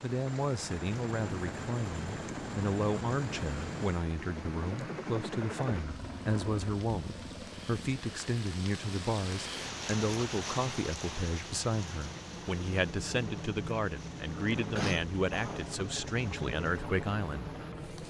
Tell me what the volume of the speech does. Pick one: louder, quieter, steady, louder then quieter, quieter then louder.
steady.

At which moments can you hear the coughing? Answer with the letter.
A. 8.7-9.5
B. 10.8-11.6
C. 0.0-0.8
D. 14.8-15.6
D.